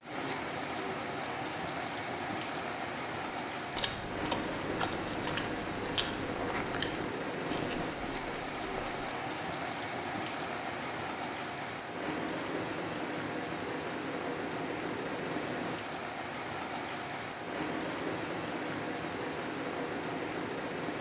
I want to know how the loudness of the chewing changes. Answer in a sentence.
The loudness of the chewing goes up, then down.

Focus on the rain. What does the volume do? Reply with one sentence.
The loudness of the rain stays about the same.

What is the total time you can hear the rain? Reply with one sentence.
The rain can be heard for 21 seconds in total.